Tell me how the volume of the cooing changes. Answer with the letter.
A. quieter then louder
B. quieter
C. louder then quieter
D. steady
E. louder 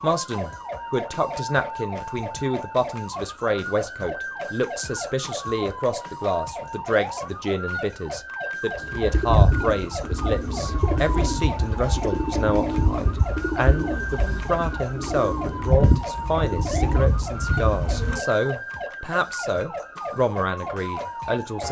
D.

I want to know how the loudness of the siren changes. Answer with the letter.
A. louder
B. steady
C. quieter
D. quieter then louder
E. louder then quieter
B.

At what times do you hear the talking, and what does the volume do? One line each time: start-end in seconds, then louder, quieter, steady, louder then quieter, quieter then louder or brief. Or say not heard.
0.0-21.6 steady.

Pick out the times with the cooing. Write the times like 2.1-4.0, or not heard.
8.8-18.2.